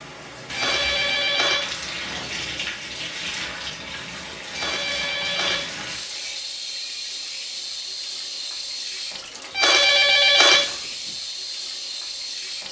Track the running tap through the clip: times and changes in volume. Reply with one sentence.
The running tap can be heard from 0.0 to 12.6 s, at a steady volume.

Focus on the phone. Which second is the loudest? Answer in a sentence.
The volume of the phone peaks at 10 seconds.